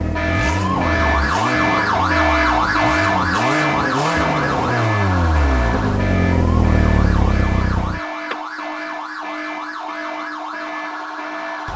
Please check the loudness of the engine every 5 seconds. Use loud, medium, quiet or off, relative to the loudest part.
loud, loud, off.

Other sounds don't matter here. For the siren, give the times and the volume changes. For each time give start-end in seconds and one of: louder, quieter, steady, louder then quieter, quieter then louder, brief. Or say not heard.
0.0-11.7 quieter.